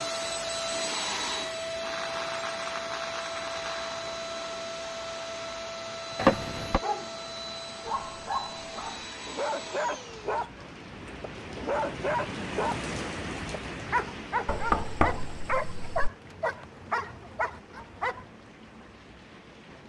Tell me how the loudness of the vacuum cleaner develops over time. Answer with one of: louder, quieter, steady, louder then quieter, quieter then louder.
quieter.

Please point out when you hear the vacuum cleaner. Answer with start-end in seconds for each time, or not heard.
0.0-10.4.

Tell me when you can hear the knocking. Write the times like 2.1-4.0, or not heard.
6.2-6.8, 14.4-16.1.